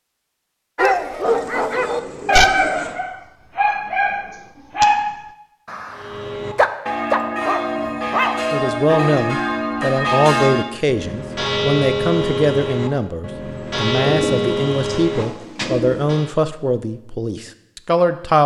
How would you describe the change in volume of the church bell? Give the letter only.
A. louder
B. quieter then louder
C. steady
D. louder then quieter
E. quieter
C.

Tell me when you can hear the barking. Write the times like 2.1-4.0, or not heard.
0.8-8.4.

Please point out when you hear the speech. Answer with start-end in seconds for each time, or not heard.
8.5-18.4.